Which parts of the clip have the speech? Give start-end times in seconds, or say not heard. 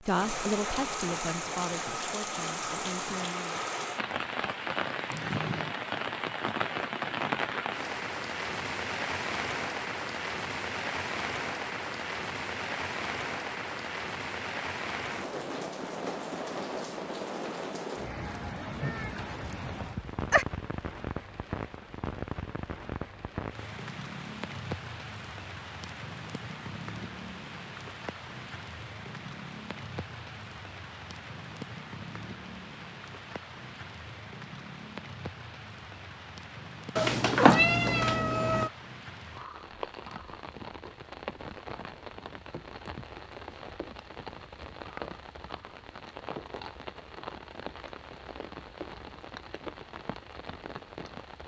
0.0-3.6.